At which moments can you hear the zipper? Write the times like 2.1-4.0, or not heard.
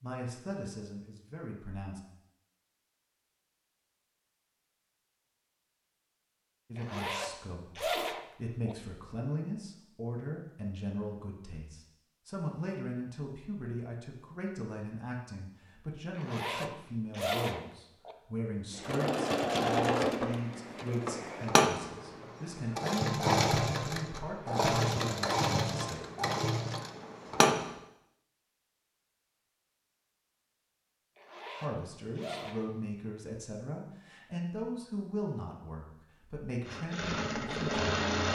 6.8-8.8, 16.1-18.1, 31.1-32.6.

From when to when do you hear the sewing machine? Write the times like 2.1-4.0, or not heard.
18.7-27.8, 36.6-38.3.